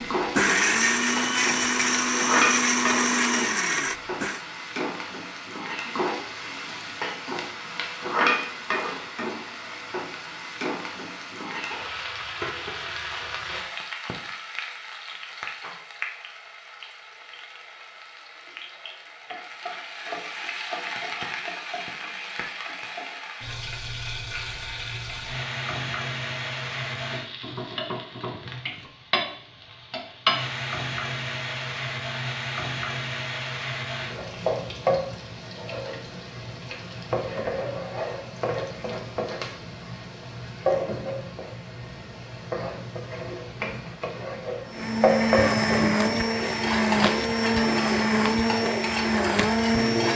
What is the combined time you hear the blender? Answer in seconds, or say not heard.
10 s.